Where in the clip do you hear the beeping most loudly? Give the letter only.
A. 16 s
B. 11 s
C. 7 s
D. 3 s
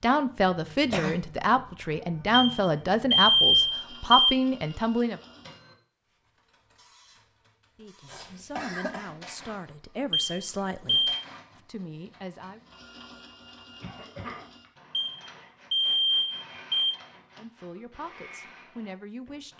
D.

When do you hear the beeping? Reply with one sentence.
The beeping can be heard from 2.3 to 4.3 s, from 10.1 to 11.2 s and from 14.9 to 16.9 s.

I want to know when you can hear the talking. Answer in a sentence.
The talking can be heard from 0.0 to 5.2 s, from 7.8 to 12.7 s and from 17.4 to 19.5 s.